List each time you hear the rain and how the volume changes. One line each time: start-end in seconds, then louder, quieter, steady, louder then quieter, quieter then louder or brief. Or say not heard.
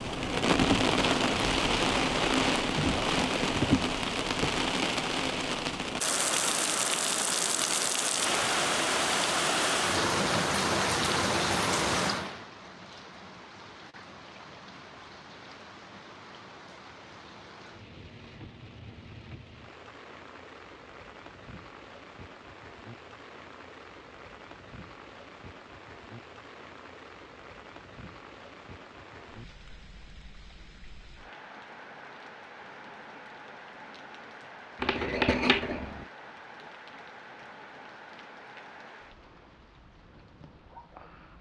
0.0-41.3 quieter.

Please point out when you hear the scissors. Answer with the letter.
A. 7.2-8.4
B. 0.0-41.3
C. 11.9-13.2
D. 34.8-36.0
D.